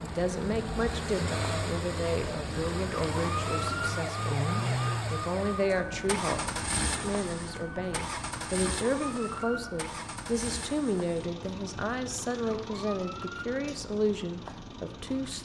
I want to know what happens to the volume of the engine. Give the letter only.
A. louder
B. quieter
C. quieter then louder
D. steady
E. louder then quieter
B.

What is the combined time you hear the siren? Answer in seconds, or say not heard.
15 s.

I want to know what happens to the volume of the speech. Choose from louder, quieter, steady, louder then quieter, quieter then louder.
steady.